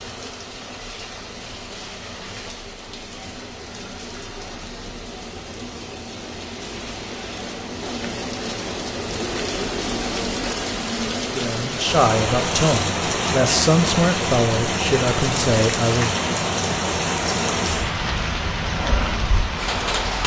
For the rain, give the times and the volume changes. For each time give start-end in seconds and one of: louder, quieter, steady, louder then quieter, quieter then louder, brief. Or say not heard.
0.0-20.2 louder.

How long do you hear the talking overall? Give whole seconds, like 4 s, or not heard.
5 s.